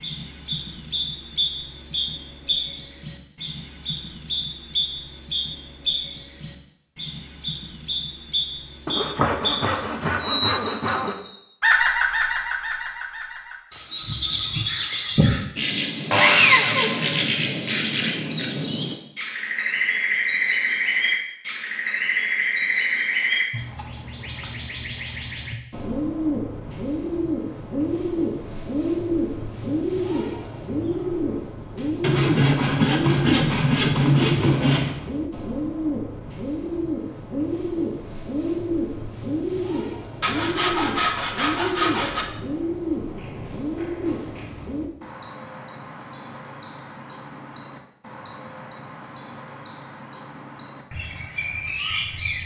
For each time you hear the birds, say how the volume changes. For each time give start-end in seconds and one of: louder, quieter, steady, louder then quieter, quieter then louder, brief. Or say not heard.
0.0-52.4 quieter.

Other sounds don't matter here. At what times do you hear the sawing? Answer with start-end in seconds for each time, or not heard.
8.8-11.2, 16.1-17.2, 32.0-35.0, 40.2-42.2.